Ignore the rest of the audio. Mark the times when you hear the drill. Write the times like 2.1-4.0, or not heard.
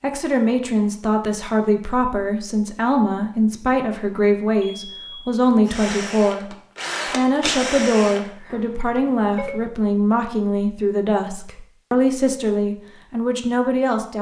5.7-8.2.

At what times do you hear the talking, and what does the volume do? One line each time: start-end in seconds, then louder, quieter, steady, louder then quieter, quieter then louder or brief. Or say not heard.
0.0-14.1 steady.